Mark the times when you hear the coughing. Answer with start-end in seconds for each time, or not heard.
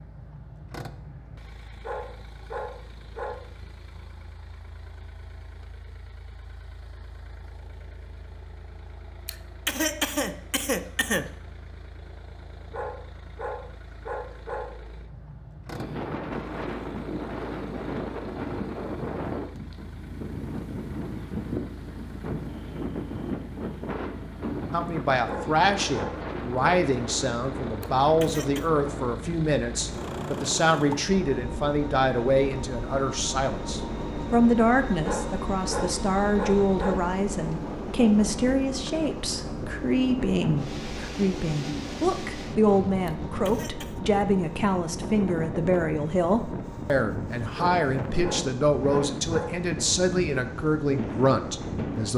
9.2-11.3, 27.8-28.7, 43.0-44.0.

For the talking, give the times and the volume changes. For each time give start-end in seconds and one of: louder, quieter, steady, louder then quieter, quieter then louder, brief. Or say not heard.
24.7-52.1 steady.